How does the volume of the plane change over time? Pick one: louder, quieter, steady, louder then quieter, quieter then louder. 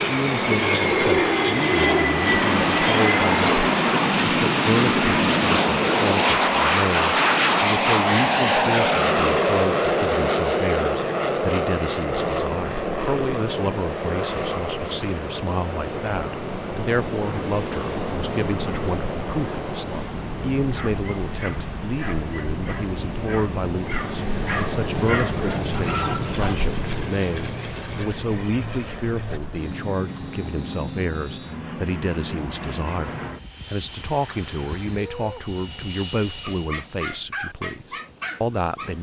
quieter.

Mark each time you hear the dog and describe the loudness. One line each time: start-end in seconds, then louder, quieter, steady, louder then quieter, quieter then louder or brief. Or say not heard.
20.6-26.7 louder
36.5-38.9 brief.